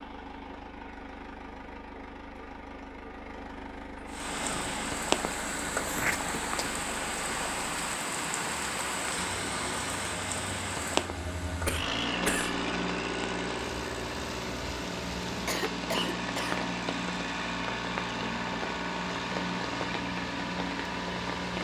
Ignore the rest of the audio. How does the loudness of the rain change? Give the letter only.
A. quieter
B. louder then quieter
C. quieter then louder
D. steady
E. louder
A.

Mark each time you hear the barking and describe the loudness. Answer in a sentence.
You can't hear the barking here.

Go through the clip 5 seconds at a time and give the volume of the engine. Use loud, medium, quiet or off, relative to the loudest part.
medium, medium, loud, loud, loud.